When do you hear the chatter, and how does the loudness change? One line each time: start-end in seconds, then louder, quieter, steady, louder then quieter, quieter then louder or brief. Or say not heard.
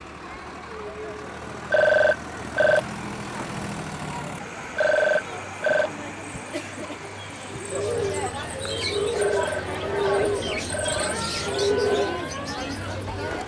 0.0-13.4 louder.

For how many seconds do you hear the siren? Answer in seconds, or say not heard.
not heard.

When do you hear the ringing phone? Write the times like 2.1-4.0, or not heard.
1.7-2.9, 4.8-5.9, 9.2-11.2.